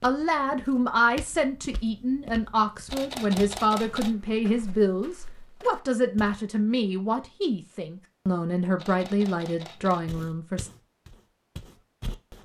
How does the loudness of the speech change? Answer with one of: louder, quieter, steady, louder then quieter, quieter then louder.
steady.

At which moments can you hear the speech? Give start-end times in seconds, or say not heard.
0.0-10.7.